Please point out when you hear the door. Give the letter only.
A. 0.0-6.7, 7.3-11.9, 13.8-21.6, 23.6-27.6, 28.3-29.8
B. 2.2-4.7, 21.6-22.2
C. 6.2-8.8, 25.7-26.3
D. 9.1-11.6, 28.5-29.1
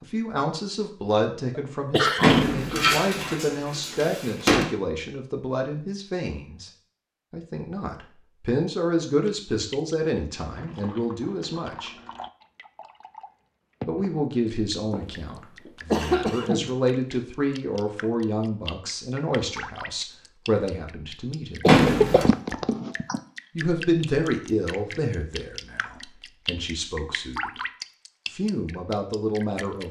B.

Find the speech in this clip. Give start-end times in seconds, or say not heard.
0.0-6.7, 7.3-11.9, 13.8-21.6, 23.6-27.6, 28.3-29.8.